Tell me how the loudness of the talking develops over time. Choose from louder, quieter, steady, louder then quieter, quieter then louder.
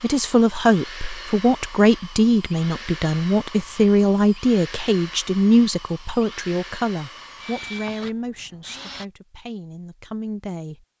quieter.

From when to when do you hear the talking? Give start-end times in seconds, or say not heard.
0.0-10.8.